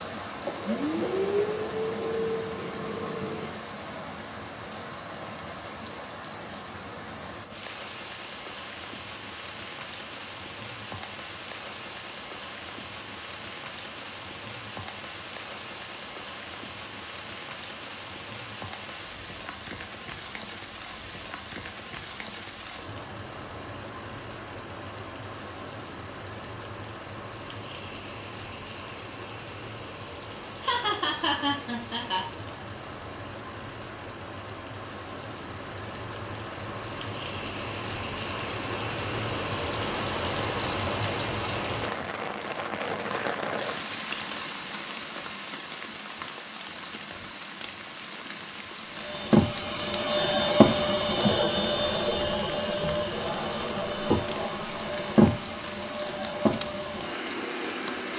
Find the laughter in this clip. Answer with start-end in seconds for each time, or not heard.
30.6-32.2.